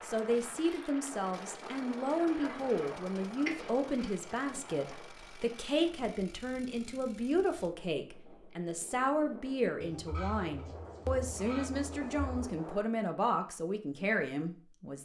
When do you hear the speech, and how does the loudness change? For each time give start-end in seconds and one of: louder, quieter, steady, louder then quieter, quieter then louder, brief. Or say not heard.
0.0-15.0 steady.